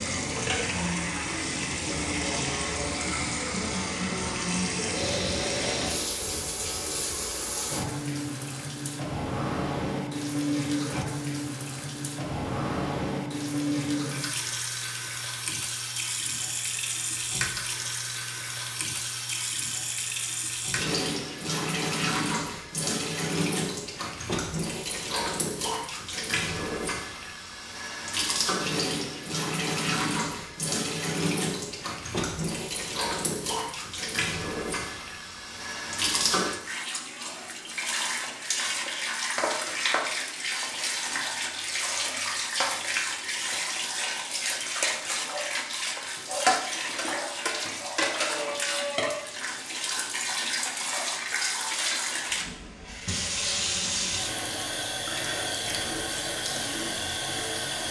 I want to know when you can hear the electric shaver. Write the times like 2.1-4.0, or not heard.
not heard.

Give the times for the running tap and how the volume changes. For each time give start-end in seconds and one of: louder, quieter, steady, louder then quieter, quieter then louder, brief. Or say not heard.
0.0-57.8 steady.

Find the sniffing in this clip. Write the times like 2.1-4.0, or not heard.
4.9-6.1.